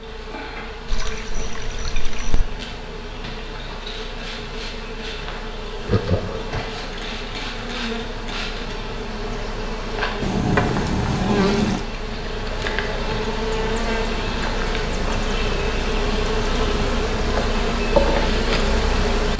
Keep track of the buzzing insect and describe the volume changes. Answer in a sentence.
The loudness of the buzzing insect goes up.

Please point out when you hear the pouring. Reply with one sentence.
The pouring can be heard from 0.8 to 2.5 s and from 10.2 to 11.8 s.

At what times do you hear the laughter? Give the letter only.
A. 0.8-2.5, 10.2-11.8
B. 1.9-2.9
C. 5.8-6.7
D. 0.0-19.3
C.